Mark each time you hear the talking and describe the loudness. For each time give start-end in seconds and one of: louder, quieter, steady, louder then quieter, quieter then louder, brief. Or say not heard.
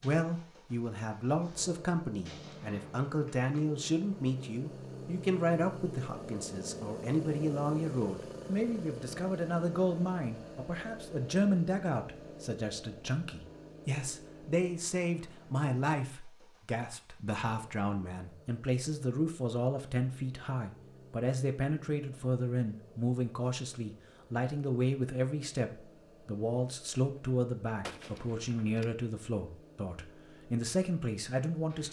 0.0-31.8 steady.